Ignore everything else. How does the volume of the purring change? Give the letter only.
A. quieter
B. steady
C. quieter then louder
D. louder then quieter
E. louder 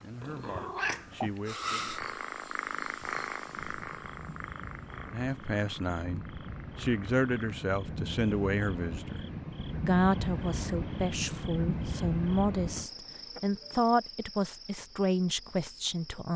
A.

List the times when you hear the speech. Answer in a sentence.
The speech can be heard from 0.0 to 1.9 s, from 5.1 to 9.2 s and from 9.8 to 16.3 s.